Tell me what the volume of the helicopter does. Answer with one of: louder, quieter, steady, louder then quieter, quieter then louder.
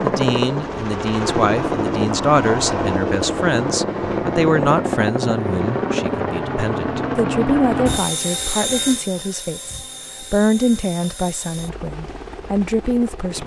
quieter.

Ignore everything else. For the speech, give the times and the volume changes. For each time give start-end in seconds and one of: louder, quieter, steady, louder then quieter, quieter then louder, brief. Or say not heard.
0.0-13.4 steady.